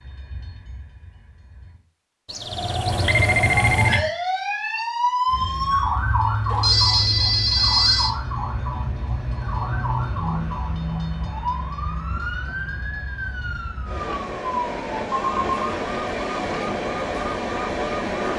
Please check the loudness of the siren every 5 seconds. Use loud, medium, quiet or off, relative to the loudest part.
loud, loud, medium, medium.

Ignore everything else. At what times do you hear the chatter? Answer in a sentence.
You can't hear the chatter here.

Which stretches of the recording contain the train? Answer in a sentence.
The train can be heard from 0.0 to 1.8 s and from 5.2 to 18.3 s.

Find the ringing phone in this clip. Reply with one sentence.
The ringing phone can be heard from 2.2 to 4.0 s, from 6.5 to 8.2 s and from 15.1 to 15.7 s.